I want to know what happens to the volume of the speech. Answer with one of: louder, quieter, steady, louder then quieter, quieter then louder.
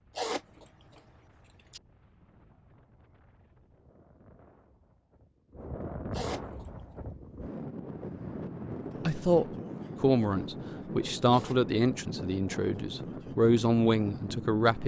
quieter then louder.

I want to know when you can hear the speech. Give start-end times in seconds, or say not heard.
9.1-14.8.